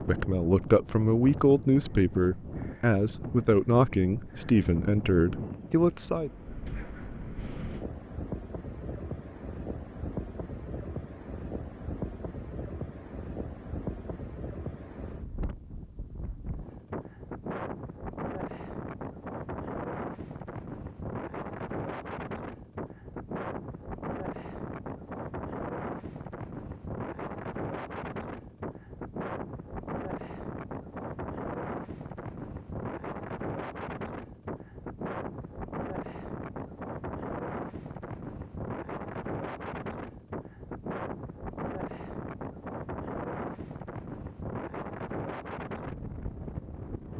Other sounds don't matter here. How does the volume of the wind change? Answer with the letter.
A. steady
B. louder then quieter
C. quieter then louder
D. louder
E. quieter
A.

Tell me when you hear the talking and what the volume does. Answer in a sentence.
You can hear the talking from 0.1 to 6.3 s, at a steady volume.